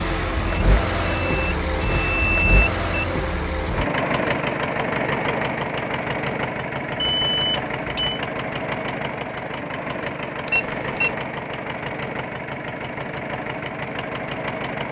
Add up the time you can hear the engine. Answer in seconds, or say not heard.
15 s.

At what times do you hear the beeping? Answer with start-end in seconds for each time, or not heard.
0.5-2.9, 7.0-8.2, 10.4-11.2.